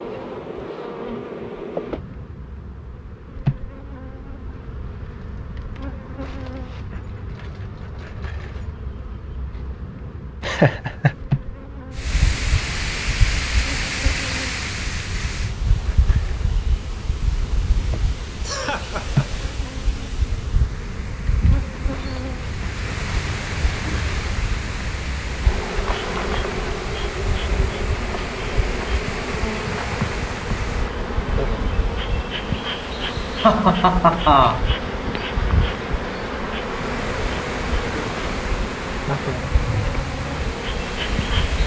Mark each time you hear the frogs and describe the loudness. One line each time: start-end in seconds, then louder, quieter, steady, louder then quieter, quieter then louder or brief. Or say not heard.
not heard.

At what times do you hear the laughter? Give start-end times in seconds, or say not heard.
10.4-11.2, 17.9-19.2, 33.4-34.6.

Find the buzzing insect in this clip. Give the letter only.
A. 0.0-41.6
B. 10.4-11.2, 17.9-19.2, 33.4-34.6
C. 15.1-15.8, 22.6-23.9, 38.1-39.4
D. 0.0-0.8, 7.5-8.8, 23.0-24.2
A.